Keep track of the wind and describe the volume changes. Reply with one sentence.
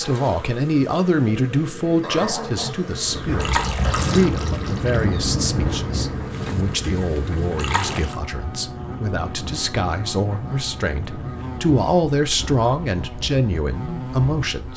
The volume of the wind goes down.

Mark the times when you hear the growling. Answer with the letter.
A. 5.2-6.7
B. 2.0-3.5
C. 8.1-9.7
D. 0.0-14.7
B.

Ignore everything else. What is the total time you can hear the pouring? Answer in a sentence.
The pouring can be heard for 2 seconds in total.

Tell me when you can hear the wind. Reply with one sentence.
The wind can be heard from 3.0 to 14.7 s.